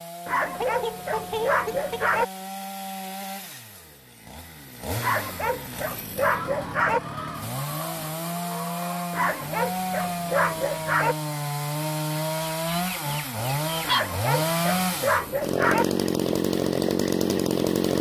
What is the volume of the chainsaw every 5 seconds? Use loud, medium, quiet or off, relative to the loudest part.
quiet, medium, loud, loud.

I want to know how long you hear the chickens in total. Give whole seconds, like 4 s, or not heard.
6 s.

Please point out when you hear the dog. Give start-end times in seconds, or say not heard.
0.2-2.2, 5.0-7.0, 9.1-11.2, 13.8-15.8.